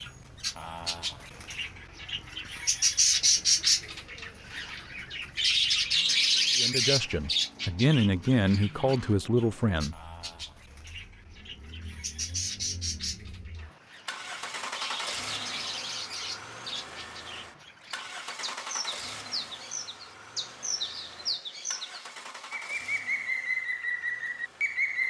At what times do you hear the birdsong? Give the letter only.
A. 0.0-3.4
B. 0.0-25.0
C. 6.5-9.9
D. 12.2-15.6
B.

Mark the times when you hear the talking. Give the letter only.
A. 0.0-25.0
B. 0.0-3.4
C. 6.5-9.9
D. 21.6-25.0
C.